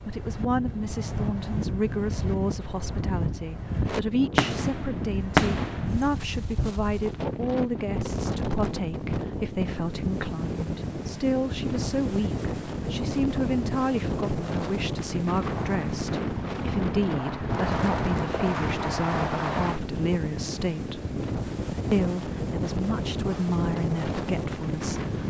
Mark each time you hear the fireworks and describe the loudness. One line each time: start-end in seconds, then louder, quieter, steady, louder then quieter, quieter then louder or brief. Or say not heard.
3.9-6.7 brief
15.4-19.8 louder.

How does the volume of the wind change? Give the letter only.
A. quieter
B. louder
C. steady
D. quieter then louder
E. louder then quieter
C.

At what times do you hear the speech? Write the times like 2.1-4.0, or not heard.
0.1-21.1, 21.9-25.1.